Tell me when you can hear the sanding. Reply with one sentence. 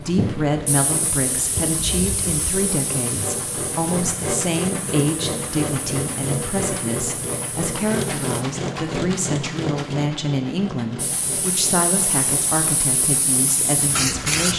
You can't hear the sanding here.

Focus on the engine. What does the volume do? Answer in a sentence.
The loudness of the engine goes up, then down.